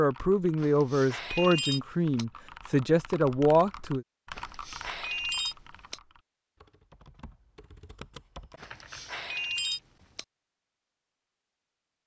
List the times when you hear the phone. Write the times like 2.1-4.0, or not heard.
0.6-2.2, 4.3-6.0, 8.6-10.2.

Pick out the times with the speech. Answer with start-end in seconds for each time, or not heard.
0.0-4.0.